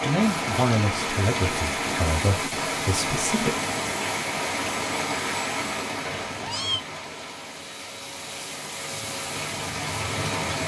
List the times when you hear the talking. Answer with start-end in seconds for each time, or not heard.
0.1-3.5.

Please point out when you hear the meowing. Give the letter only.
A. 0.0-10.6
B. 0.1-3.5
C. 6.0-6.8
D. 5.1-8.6
C.